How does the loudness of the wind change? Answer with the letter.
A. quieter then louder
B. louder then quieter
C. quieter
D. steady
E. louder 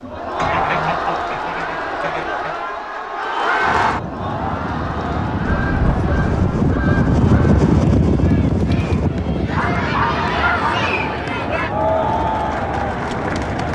B.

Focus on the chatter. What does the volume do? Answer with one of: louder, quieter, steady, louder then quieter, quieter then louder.
quieter then louder.